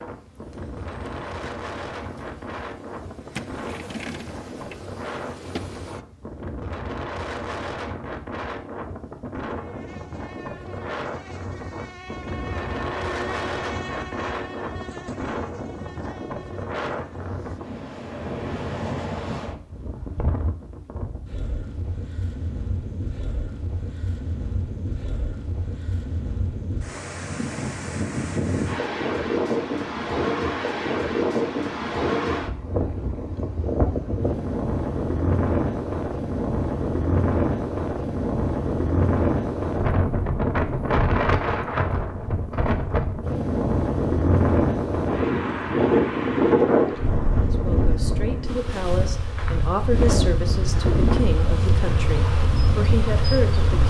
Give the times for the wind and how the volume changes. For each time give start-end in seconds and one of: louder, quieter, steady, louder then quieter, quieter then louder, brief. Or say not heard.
0.0-53.8 louder.